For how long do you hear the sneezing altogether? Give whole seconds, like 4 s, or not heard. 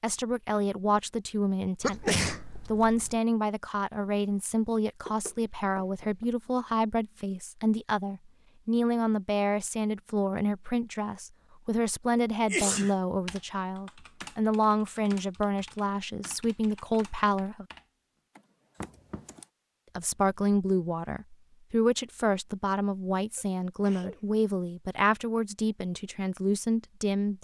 3 s.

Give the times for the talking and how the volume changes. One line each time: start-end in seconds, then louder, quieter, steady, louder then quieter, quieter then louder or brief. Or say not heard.
0.0-17.6 steady
19.9-27.4 steady.